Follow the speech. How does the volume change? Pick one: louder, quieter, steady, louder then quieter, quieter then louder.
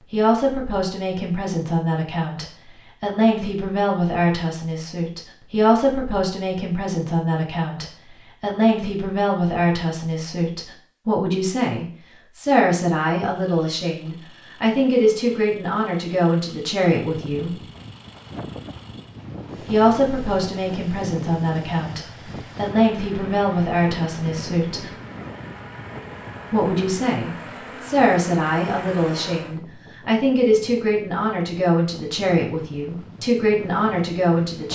steady.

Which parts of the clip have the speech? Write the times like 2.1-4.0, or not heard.
0.1-17.6, 19.6-24.9, 26.5-34.7.